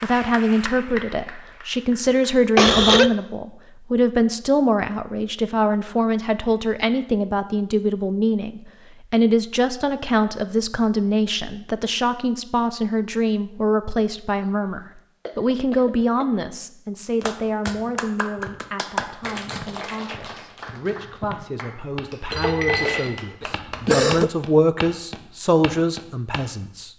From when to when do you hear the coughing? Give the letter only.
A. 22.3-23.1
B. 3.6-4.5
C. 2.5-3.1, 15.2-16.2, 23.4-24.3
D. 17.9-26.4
C.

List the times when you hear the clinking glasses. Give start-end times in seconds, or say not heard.
22.3-23.1.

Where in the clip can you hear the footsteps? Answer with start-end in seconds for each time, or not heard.
17.9-26.4.